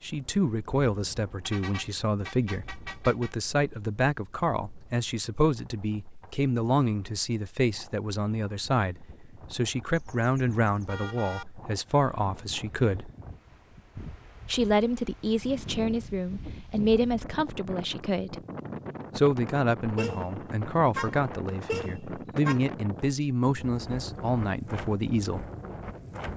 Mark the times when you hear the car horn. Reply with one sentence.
The car horn can be heard from 1.4 to 3.4 s, from 9.9 to 11.4 s, from 19.9 to 20.4 s and from 20.9 to 22.6 s.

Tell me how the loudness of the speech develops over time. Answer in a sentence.
The volume of the speech stays about the same.